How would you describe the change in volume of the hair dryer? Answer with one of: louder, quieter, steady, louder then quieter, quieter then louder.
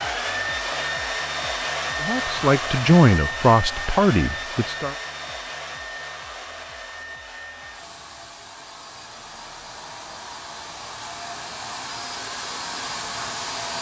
quieter then louder.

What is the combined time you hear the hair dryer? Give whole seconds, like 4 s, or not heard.
14 s.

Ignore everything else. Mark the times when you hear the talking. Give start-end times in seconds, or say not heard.
2.0-5.0.